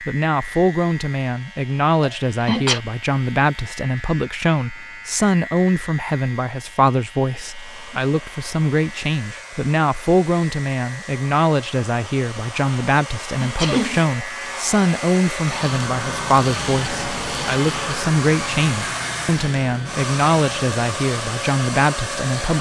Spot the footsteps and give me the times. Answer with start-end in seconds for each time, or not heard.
not heard.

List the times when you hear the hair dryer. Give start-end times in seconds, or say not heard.
7.4-22.5.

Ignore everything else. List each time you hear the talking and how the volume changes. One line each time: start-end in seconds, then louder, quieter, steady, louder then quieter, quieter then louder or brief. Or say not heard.
0.0-22.5 steady.